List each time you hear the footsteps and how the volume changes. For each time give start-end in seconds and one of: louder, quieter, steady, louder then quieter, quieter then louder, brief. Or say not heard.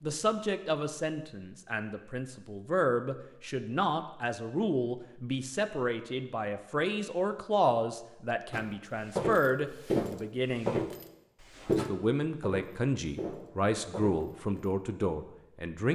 8.5-14.7 quieter.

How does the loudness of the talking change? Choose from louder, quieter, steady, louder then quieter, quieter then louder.
steady.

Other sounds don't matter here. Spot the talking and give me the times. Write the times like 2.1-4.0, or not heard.
0.0-10.8, 11.8-15.8.